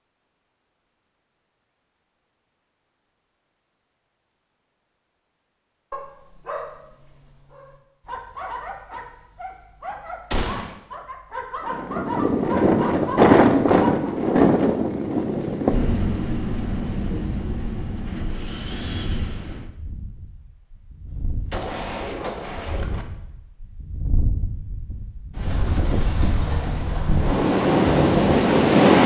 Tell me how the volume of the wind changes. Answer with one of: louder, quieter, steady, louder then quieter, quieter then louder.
quieter then louder.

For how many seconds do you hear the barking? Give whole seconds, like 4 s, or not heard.
8 s.